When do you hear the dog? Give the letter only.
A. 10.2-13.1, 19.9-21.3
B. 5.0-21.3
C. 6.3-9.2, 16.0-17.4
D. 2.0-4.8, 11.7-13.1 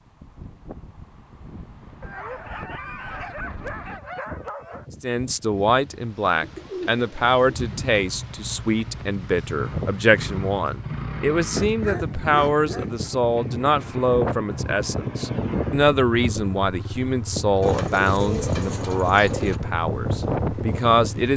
D.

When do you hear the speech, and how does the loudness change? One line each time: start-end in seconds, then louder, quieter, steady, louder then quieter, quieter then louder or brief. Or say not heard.
5.0-21.3 steady.